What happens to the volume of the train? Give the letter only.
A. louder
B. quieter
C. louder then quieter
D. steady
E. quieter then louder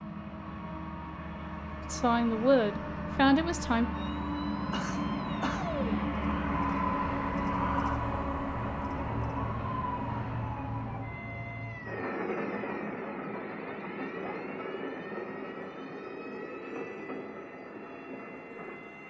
C.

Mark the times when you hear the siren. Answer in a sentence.
You can hear the siren from 3.9 to 19.0 s.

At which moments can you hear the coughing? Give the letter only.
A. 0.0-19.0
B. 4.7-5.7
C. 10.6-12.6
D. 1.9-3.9
B.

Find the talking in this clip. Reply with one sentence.
The talking can be heard from 1.9 to 3.9 s.